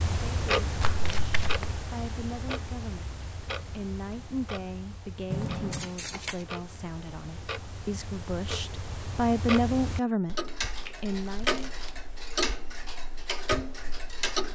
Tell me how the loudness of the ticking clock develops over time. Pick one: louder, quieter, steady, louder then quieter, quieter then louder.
quieter then louder.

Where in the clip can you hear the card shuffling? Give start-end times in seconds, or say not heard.
0.8-1.7, 5.7-6.5, 10.8-11.9.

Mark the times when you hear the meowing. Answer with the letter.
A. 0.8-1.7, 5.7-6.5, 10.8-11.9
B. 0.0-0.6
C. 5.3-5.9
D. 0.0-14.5
C.